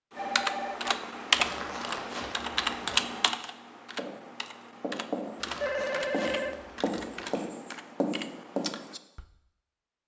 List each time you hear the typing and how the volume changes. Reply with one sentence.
You can hear the typing from 0.1 to 9.2 s, getting quieter.